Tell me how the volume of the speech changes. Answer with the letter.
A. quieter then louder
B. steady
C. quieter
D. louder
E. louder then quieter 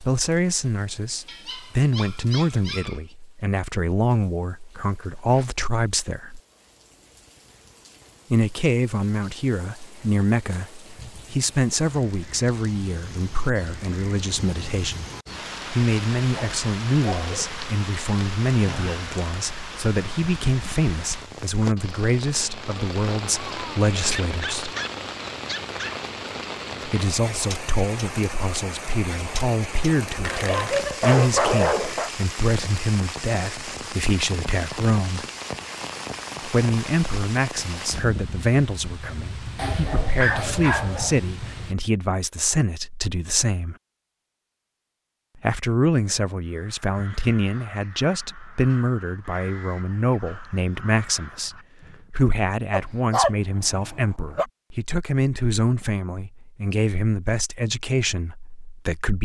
B.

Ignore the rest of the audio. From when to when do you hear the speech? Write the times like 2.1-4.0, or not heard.
0.0-6.4, 8.3-15.1, 15.7-24.7, 26.9-35.2, 36.4-43.8, 45.4-59.2.